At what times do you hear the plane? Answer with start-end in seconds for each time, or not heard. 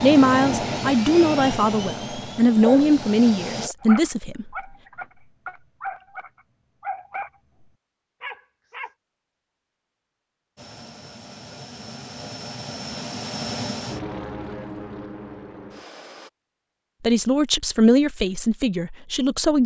0.0-3.7, 10.6-16.3.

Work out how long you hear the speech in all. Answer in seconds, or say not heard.
7 s.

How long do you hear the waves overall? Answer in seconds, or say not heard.
not heard.